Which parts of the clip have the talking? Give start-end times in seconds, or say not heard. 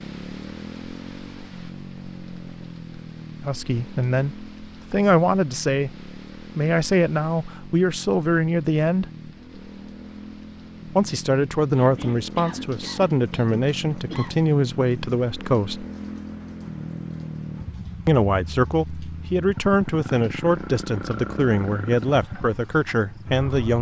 3.5-9.1, 10.9-15.8, 18.1-23.7.